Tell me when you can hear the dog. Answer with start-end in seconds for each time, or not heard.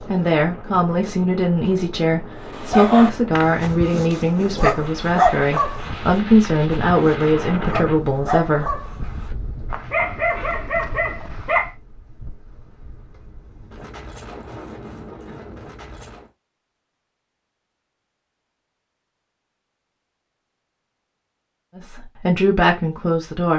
2.5-11.7.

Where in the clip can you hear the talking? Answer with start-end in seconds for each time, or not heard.
0.0-8.8, 21.8-23.5.